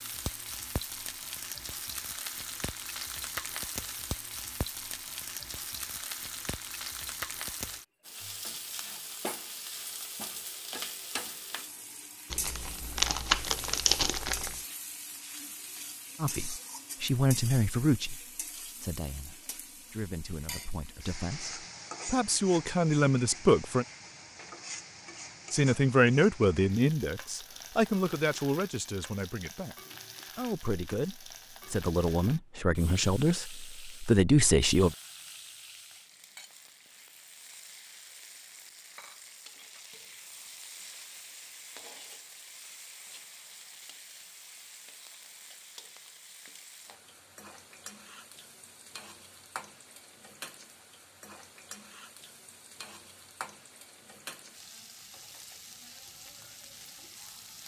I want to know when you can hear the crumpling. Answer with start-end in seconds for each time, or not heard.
12.3-14.6.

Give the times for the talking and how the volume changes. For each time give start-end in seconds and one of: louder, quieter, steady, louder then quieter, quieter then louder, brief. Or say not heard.
16.2-23.9 quieter then louder
25.5-29.8 quieter
30.4-35.0 louder.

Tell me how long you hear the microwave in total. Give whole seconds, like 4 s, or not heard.
not heard.